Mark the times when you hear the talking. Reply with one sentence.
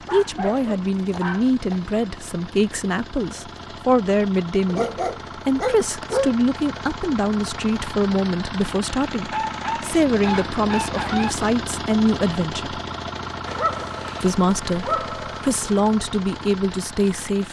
The talking can be heard from 0.1 to 12.8 s and from 14.2 to 17.4 s.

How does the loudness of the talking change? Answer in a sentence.
The loudness of the talking stays about the same.